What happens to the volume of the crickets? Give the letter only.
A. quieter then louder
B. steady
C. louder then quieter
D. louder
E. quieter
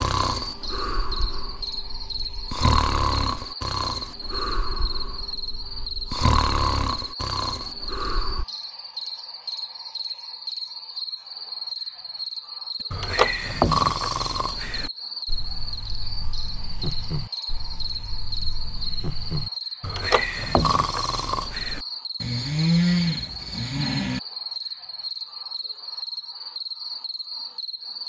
B.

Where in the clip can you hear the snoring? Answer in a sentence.
The snoring can be heard from 0.0 to 8.4 s and from 12.9 to 24.2 s.